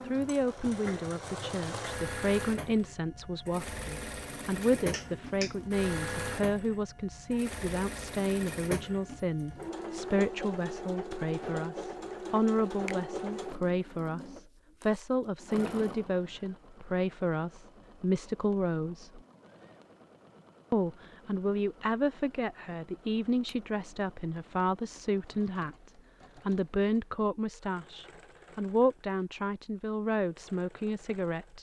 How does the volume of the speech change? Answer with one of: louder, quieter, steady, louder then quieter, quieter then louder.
steady.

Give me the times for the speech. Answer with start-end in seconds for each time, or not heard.
0.1-19.2, 20.7-31.5.